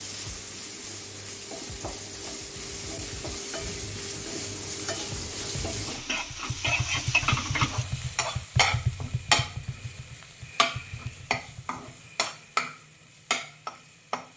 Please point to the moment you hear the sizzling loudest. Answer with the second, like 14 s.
9 s.